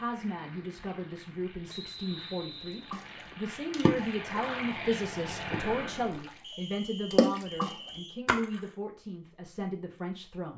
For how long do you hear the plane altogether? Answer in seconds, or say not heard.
6 s.